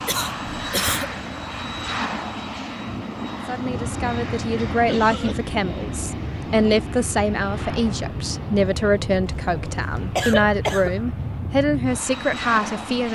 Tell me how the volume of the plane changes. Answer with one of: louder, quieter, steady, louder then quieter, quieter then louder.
steady.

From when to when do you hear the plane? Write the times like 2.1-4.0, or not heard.
0.0-13.1.